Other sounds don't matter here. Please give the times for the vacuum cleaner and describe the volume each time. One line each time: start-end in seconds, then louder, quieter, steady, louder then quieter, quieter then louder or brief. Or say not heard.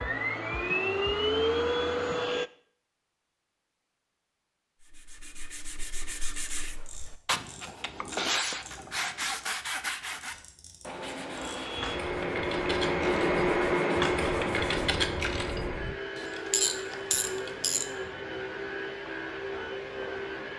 0.0-2.5 brief
11.3-20.5 quieter.